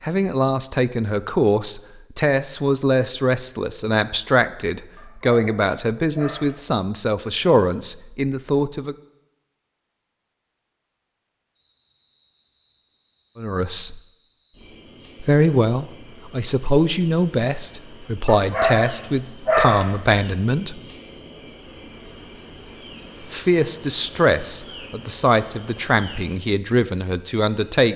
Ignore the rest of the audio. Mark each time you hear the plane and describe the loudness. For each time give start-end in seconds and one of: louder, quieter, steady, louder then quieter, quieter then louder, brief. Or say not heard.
not heard.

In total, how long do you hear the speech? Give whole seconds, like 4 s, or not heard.
20 s.